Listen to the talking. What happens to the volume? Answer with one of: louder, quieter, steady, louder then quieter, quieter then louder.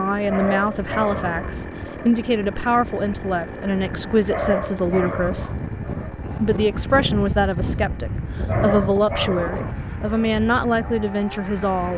steady.